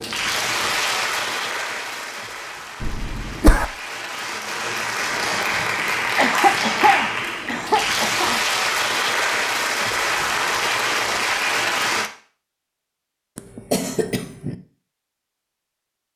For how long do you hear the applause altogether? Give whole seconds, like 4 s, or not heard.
12 s.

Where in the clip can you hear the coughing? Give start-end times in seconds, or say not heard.
2.8-3.6, 6.2-8.4, 13.3-14.6.